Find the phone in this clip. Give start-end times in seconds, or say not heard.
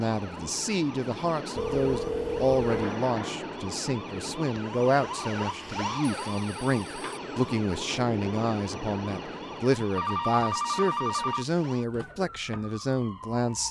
1.6-3.0, 6.0-7.5, 9.8-11.4.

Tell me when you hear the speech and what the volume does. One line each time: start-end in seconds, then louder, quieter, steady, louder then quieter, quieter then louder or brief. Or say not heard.
0.0-13.6 steady.